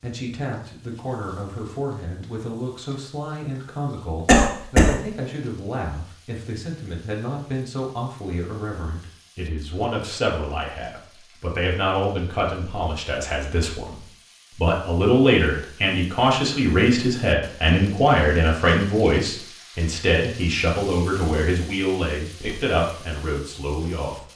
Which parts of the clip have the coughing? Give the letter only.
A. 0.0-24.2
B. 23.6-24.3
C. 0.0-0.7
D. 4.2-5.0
D.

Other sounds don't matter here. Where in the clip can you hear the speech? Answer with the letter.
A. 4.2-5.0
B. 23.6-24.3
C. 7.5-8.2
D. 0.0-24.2
D.